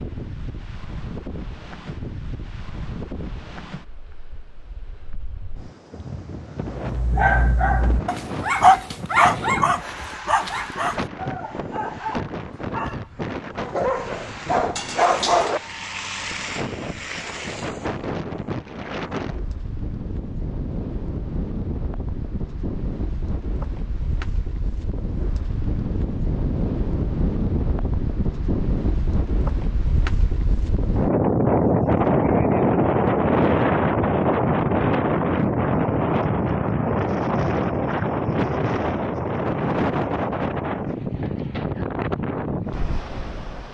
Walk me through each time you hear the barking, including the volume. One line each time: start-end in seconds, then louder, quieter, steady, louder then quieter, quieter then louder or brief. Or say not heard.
6.8-15.6 quieter then louder.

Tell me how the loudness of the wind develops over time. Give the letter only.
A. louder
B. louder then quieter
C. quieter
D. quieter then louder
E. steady
A.